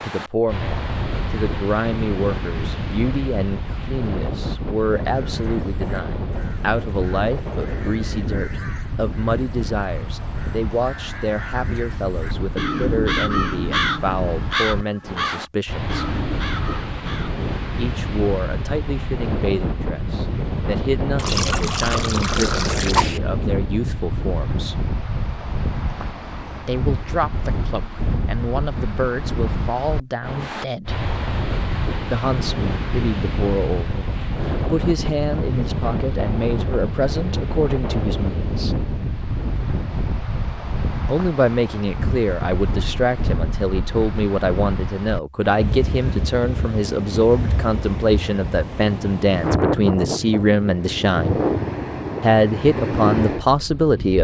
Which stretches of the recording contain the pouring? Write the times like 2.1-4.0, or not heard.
21.1-23.2.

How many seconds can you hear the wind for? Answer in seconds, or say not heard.
54 s.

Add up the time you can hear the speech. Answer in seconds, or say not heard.
46 s.